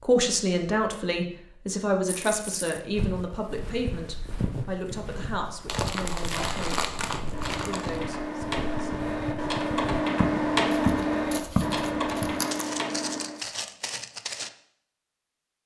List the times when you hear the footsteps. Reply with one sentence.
You can hear the footsteps from 2.9 to 14.5 s.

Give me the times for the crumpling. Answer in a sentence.
The crumpling can be heard from 2.0 to 2.8 s, from 5.7 to 8.0 s and from 10.7 to 12.7 s.